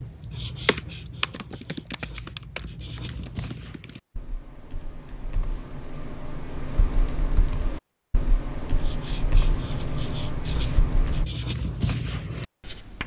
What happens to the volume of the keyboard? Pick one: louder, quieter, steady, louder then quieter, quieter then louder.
quieter then louder.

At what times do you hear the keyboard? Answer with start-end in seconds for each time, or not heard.
0.7-11.2.